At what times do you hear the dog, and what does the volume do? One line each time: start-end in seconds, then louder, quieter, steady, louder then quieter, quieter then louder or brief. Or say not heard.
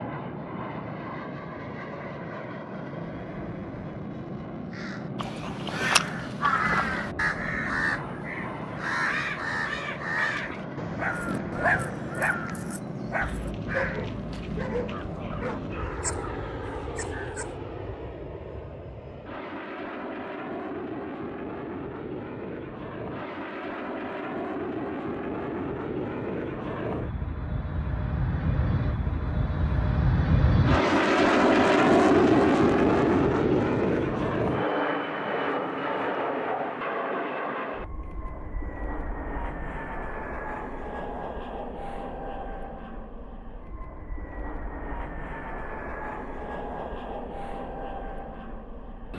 10.9-17.6 quieter.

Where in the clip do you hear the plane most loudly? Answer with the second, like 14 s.
32 s.